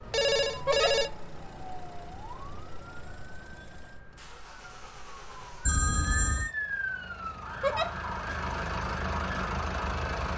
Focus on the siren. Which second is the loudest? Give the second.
7 s.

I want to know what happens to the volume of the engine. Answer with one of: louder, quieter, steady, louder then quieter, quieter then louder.
louder.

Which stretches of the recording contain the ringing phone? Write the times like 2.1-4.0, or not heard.
0.1-1.1, 5.7-6.5.